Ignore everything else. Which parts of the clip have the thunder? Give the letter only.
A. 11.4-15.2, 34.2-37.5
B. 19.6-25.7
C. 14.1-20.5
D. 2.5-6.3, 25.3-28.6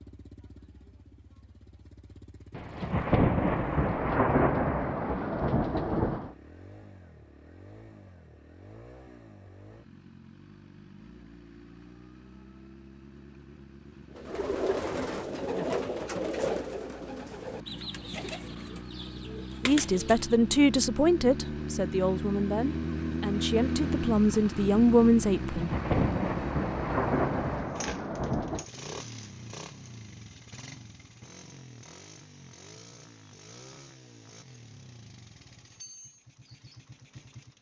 D.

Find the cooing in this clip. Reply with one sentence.
The cooing can be heard from 14.1 to 20.5 s.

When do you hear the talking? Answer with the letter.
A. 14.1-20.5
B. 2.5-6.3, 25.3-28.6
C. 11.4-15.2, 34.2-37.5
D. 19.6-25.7
D.